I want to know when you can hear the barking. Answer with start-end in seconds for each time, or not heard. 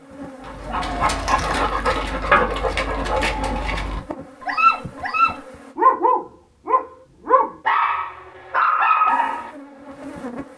0.5-9.5.